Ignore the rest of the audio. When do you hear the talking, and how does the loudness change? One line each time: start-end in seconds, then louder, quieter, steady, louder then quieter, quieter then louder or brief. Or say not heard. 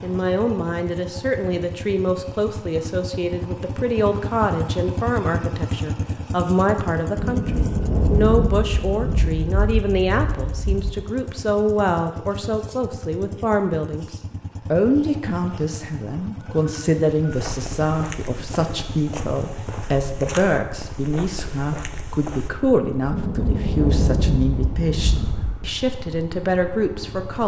0.0-27.4 steady.